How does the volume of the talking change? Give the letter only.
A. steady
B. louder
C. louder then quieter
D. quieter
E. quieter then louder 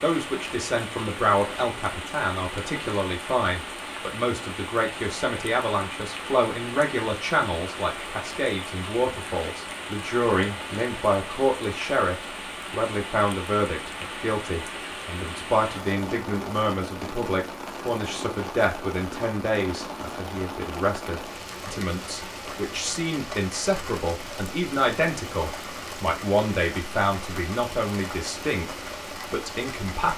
A.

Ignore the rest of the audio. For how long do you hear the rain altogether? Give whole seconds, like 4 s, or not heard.
30 s.